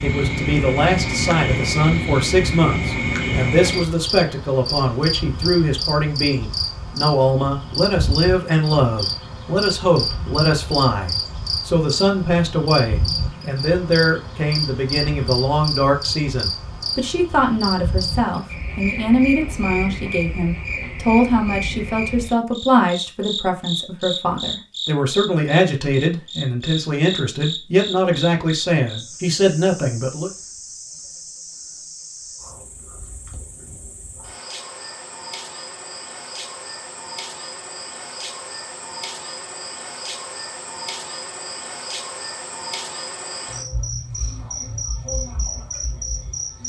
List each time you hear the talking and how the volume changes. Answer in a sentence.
The talking can be heard from 0.0 to 30.3 s, at a steady volume.